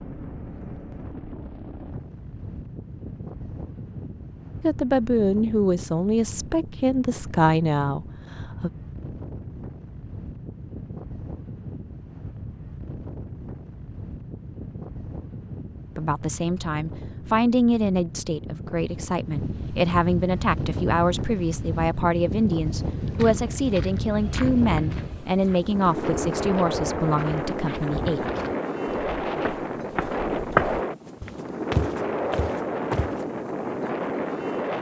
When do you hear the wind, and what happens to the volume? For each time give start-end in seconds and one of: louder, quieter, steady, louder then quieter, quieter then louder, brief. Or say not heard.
0.0-34.7 louder.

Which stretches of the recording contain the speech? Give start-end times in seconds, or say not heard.
4.6-8.7, 15.9-28.2.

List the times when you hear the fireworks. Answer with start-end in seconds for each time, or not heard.
not heard.